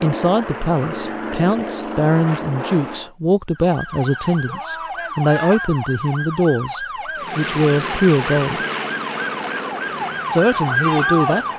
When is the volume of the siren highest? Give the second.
11 s.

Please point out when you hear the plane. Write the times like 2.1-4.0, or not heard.
0.0-3.1, 7.2-11.5.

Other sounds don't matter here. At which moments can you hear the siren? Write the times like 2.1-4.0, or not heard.
3.5-11.5.